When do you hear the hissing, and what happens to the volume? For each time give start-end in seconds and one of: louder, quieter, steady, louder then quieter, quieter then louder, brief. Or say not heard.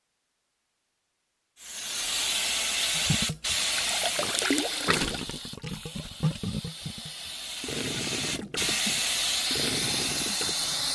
1.6-10.8 quieter then louder.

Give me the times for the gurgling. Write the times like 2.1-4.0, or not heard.
3.0-10.6.